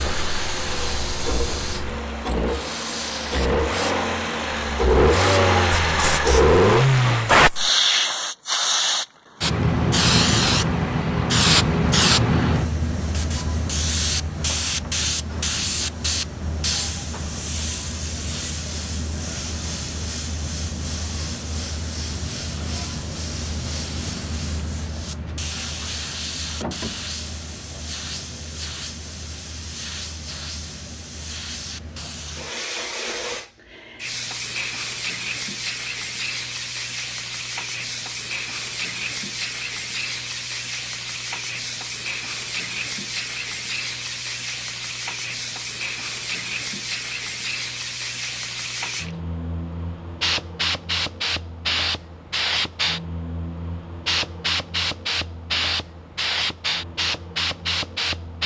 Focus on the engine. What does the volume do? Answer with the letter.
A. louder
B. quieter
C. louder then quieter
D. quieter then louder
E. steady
A.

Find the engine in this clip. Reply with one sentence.
You can hear the engine from 0.0 to 7.4 s.